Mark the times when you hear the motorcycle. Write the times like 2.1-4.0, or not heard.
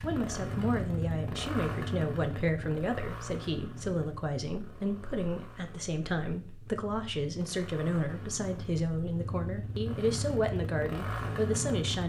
0.0-12.0.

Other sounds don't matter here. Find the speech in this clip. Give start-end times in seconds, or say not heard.
0.0-12.0.